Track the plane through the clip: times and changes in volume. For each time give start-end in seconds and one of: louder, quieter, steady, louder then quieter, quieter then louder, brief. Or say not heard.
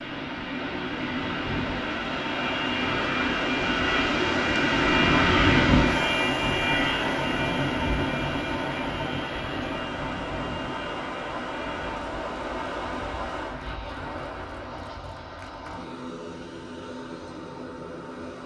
0.0-18.4 louder then quieter.